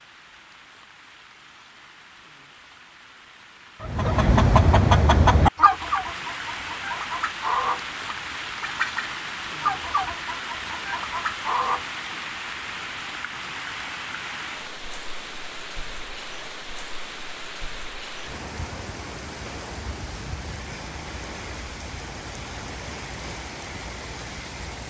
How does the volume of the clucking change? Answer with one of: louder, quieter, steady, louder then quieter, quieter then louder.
quieter.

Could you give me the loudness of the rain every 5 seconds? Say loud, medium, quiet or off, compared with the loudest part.
quiet, loud, loud, loud, loud.